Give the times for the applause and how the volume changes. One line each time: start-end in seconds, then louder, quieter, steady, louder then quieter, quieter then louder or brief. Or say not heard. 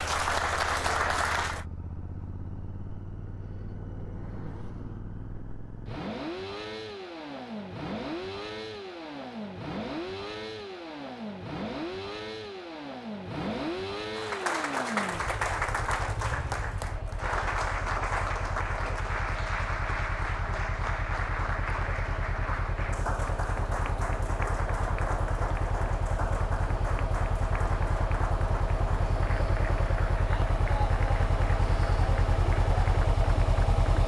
0.0-1.6 brief
14.2-34.0 quieter.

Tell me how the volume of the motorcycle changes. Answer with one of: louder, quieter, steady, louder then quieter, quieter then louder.
louder.